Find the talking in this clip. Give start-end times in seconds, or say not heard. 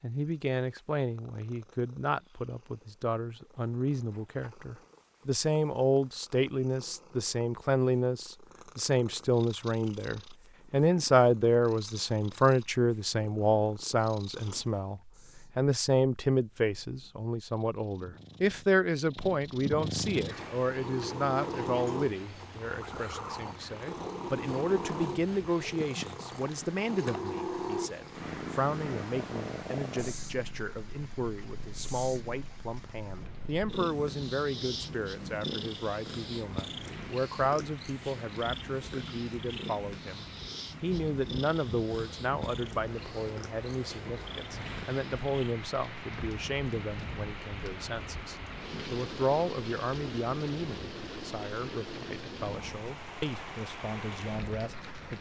0.0-55.1.